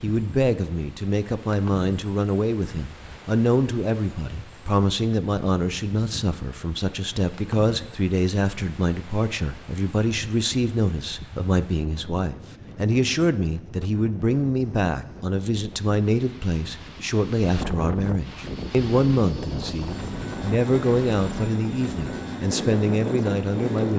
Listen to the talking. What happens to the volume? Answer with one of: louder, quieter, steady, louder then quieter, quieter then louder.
steady.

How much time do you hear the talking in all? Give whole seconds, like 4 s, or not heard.
24 s.